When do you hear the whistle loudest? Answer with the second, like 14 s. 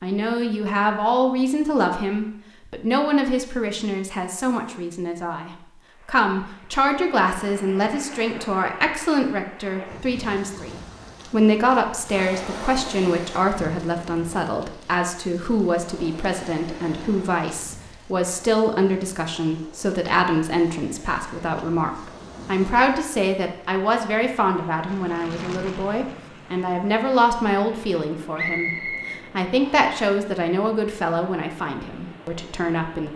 29 s.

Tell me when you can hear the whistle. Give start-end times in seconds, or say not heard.
28.4-29.9.